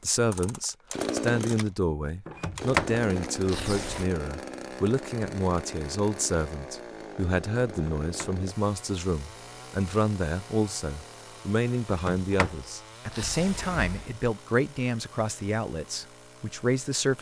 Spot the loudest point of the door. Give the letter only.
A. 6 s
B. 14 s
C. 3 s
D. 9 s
C.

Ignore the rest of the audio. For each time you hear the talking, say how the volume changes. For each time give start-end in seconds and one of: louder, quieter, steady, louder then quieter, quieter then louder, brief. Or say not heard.
0.0-17.1 steady.